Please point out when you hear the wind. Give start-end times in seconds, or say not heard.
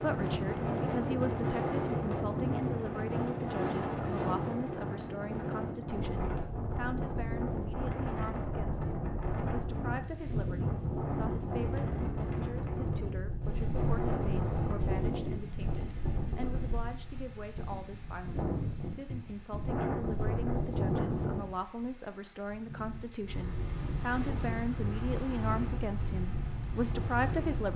0.0-27.7.